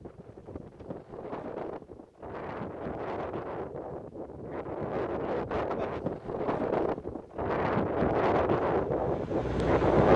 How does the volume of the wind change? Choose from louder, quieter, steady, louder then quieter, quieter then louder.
louder.